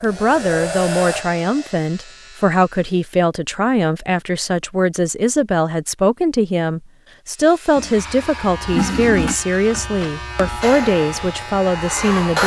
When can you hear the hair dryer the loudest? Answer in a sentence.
The volume of the hair dryer peaks at 12 seconds.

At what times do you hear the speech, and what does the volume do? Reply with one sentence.
The speech can be heard from 0.0 to 12.4 s, at a steady volume.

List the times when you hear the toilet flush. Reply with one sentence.
You can hear the toilet flush from 7.8 to 9.3 s.